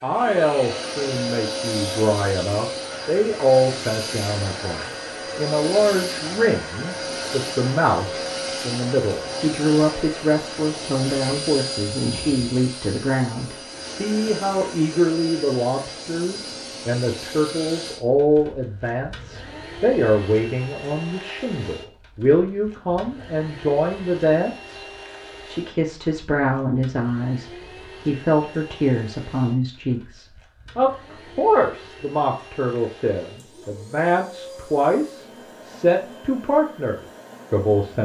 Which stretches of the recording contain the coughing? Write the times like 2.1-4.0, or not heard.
not heard.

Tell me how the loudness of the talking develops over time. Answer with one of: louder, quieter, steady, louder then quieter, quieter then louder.
steady.